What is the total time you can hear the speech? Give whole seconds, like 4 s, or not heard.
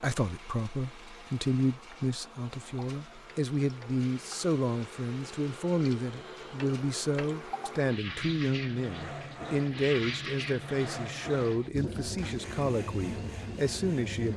14 s.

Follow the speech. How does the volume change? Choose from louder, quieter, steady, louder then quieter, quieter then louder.
steady.